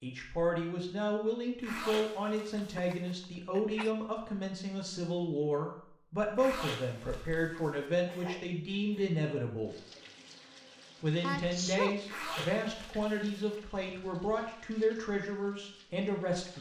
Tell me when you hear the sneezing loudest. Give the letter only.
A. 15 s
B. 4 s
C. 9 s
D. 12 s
D.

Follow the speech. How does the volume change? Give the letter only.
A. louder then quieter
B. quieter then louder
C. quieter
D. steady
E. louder
D.